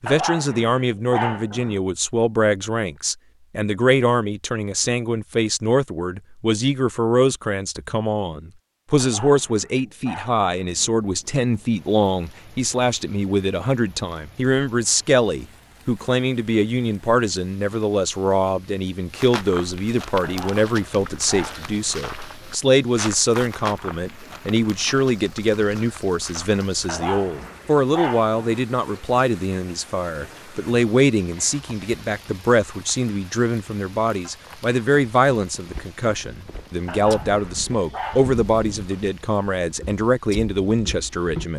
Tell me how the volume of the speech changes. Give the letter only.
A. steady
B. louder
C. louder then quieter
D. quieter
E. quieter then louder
A.